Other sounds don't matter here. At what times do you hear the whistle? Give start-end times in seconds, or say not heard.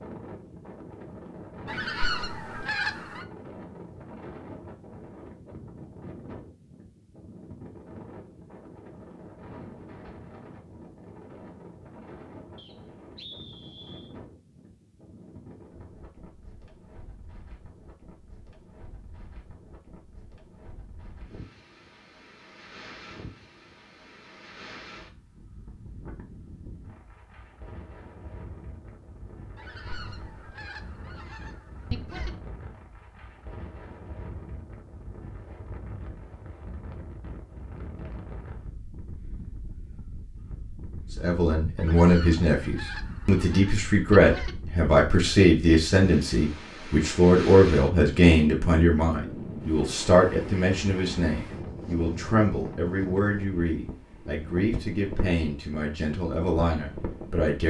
12.6-14.2.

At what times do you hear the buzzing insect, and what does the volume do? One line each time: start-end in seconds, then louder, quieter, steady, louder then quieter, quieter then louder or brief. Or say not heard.
not heard.